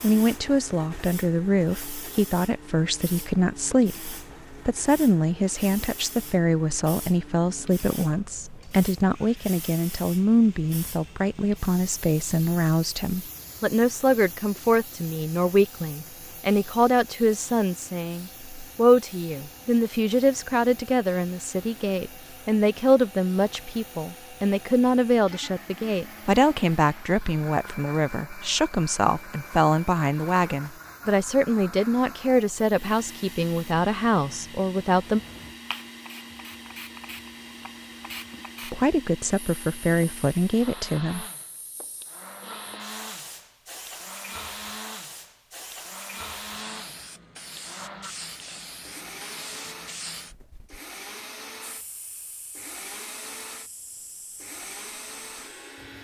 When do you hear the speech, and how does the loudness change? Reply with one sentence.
The speech can be heard from 0.0 to 35.2 s, at a steady volume; and briefly from 38.6 to 41.2 s.